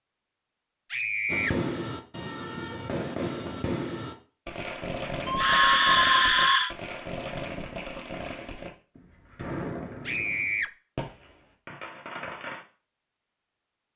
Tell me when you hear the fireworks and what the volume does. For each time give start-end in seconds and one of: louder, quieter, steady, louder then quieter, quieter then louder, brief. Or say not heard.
1.2-12.7 quieter.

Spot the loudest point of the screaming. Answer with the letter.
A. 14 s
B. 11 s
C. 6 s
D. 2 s
C.